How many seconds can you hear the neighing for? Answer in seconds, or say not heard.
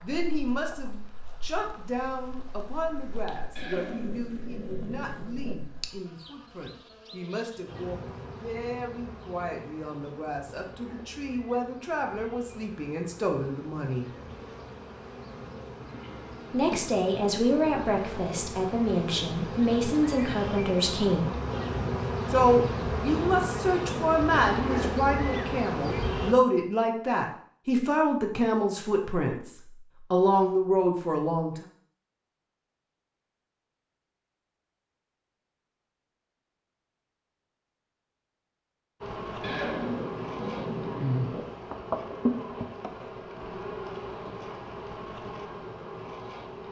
4 s.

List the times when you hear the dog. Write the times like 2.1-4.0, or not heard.
not heard.